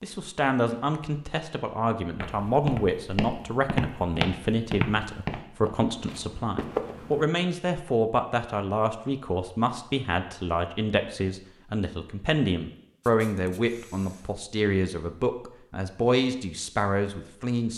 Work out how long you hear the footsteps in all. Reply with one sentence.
The footsteps can be heard for 5 seconds in total.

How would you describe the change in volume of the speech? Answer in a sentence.
The volume of the speech stays about the same.